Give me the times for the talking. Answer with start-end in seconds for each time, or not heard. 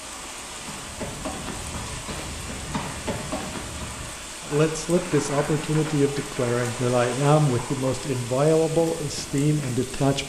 4.4-10.2.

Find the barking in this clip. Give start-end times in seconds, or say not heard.
not heard.